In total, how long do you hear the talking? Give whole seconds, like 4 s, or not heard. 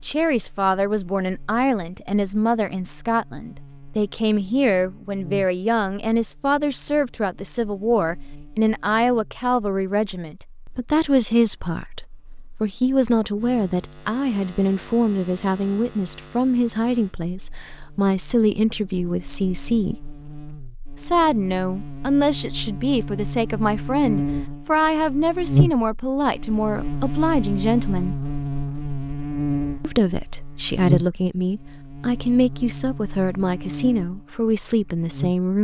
33 s.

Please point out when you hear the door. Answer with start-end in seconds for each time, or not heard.
not heard.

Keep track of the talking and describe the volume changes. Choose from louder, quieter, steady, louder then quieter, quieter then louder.
steady.